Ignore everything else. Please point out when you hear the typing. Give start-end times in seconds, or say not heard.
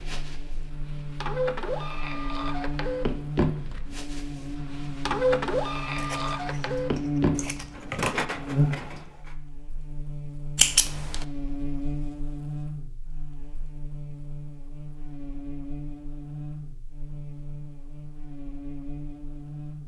not heard.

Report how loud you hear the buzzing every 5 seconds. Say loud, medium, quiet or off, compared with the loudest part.
medium, loud, medium, medium.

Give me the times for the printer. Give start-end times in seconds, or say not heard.
0.0-9.3.